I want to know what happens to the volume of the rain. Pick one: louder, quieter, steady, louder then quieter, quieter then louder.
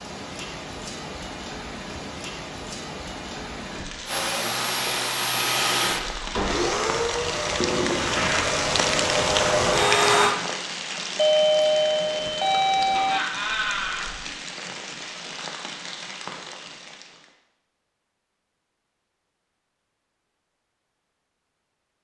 louder then quieter.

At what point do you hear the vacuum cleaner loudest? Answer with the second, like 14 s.
10 s.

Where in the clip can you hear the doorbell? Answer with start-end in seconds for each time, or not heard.
11.2-13.2.